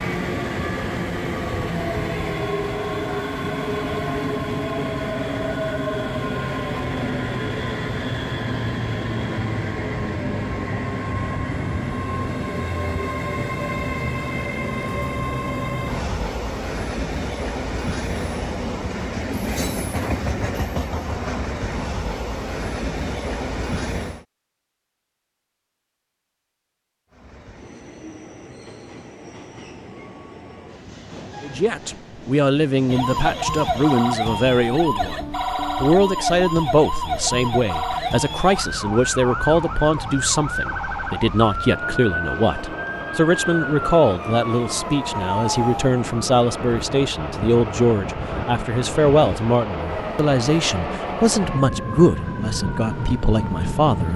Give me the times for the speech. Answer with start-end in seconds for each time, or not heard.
31.4-54.1.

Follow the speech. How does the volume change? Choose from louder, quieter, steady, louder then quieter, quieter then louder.
steady.